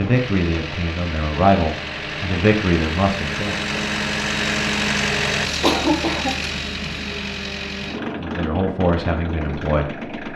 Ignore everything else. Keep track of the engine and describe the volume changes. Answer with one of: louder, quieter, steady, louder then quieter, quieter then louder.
louder then quieter.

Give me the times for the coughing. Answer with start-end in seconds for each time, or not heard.
5.6-6.3.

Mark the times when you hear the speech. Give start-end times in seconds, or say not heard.
0.0-3.6, 8.2-10.1.